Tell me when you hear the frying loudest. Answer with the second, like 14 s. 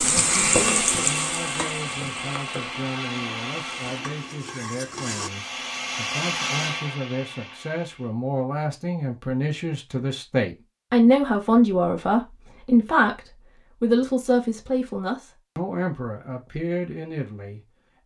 1 s.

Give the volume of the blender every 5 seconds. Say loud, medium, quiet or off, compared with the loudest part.
loud, loud, off, off.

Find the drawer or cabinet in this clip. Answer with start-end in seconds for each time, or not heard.
not heard.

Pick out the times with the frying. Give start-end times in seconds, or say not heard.
0.0-5.3.